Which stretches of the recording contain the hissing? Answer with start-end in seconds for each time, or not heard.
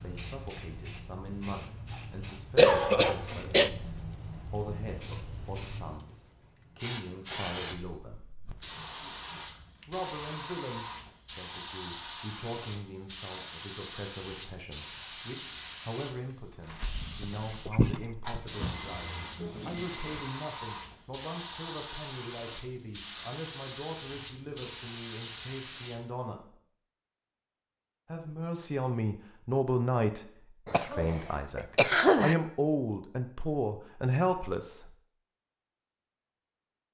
0.0-26.1.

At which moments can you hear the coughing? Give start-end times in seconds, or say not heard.
2.5-3.7, 17.2-18.4, 30.6-32.4.